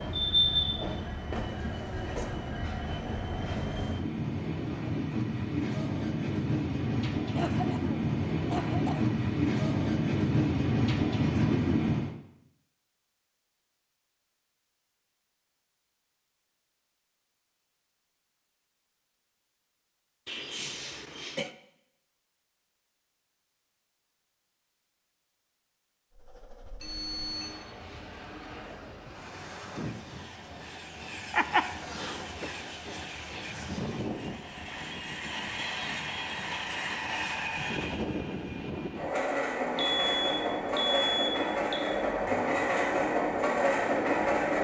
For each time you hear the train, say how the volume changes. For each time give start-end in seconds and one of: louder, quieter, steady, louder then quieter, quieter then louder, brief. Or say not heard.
0.0-12.2 louder
26.1-44.5 louder.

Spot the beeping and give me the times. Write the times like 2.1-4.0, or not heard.
0.1-0.8, 26.8-27.6, 39.8-41.8.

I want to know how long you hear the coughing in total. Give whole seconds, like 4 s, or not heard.
4 s.